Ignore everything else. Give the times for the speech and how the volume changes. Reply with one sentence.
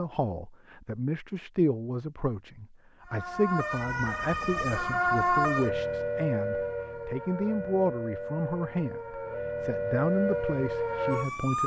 You can hear the speech from 0.0 to 11.6 s, at a steady volume.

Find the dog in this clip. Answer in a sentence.
You can't hear the dog here.